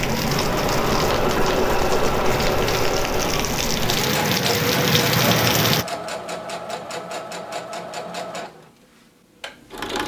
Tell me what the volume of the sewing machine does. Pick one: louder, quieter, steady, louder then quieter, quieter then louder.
quieter.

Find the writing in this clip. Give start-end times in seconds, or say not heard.
not heard.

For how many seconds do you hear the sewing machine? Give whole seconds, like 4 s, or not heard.
10 s.